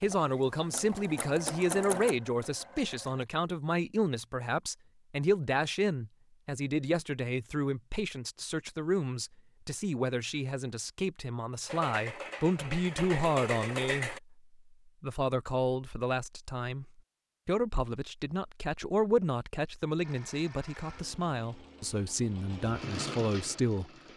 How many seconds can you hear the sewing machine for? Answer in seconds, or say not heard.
10 s.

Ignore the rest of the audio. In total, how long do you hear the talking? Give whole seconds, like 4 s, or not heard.
23 s.